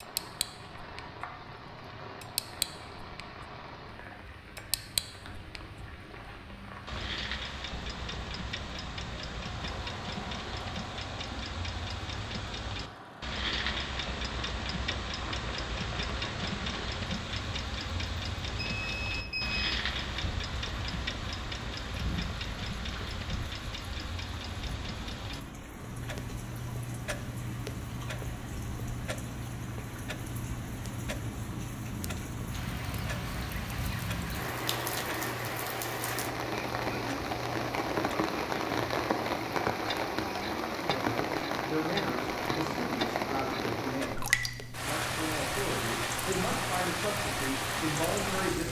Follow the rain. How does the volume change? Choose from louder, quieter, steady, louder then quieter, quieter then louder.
louder.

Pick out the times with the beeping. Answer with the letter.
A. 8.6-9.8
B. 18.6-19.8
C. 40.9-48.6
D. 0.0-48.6
B.